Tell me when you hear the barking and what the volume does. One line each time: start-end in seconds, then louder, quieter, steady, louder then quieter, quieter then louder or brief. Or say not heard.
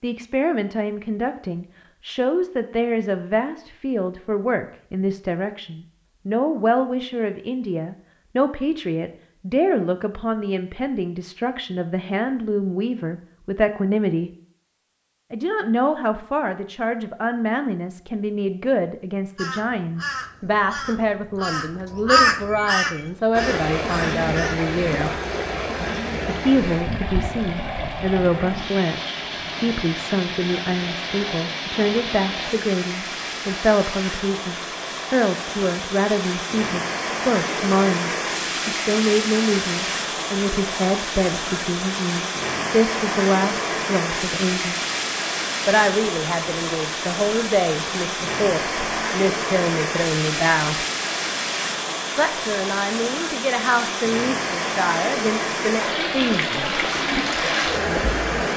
not heard.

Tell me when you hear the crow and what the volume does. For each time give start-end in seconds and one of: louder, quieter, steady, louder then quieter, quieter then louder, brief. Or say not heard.
19.4-24.7 louder then quieter.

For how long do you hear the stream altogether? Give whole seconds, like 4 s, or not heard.
35 s.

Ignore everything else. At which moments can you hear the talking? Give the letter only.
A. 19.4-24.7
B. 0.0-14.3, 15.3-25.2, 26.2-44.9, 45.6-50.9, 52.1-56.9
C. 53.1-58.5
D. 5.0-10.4
B.